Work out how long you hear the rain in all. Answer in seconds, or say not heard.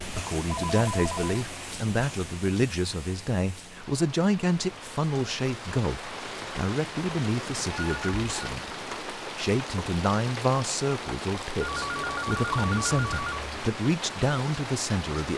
15 s.